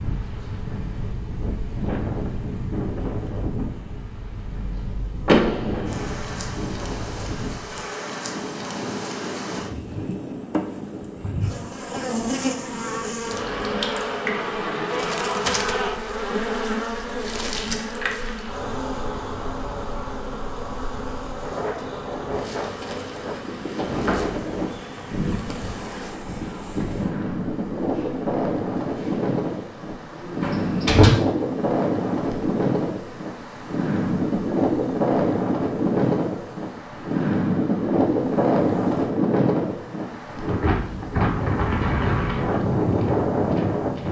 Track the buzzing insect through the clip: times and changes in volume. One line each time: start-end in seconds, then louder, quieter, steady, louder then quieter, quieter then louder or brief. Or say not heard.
0.0-44.0 louder then quieter.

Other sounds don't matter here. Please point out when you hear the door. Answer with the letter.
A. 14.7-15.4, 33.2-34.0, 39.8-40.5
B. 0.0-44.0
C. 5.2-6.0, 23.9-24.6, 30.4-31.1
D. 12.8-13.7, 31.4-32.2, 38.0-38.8
C.